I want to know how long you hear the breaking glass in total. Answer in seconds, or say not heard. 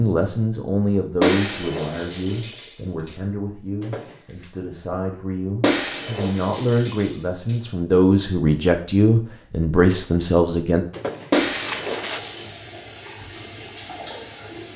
5 s.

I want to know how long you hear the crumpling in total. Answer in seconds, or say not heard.
2 s.